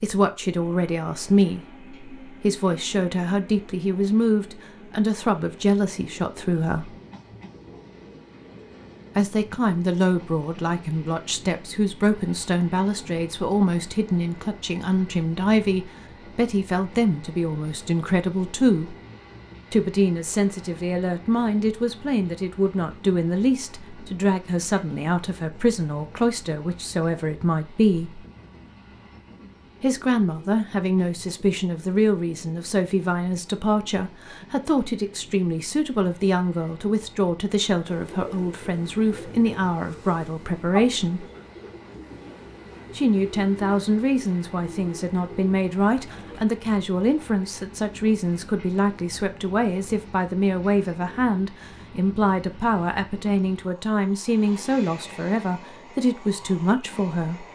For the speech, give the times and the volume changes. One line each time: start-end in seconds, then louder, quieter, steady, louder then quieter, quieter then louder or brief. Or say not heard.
0.0-6.9 steady
9.2-18.9 steady
19.7-28.2 steady
29.8-41.2 steady
43.0-57.4 steady.